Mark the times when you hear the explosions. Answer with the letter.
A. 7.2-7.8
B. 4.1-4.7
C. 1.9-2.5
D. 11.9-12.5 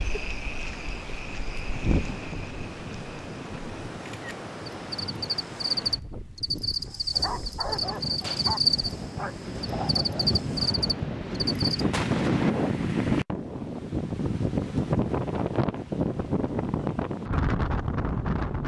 D.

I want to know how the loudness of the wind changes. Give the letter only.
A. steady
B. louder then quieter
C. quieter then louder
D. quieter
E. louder
E.